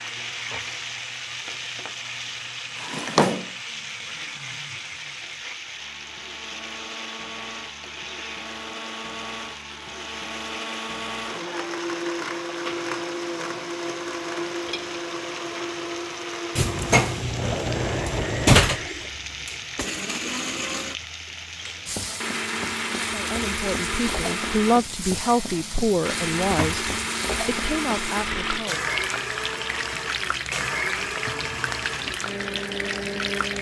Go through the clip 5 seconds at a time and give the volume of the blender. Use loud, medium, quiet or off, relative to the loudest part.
quiet, medium, loud, loud, loud, loud, loud.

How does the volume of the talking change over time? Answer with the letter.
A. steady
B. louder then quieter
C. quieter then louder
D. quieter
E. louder
B.